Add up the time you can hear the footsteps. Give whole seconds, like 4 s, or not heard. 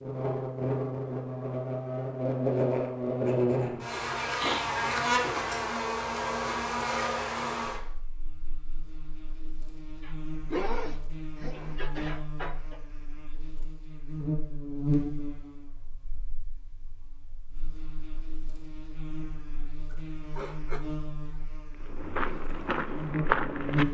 2 s.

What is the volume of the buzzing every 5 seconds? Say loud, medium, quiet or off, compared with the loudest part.
loud, loud, medium, quiet, medium.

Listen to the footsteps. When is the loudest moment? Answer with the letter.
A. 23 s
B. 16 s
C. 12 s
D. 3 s
A.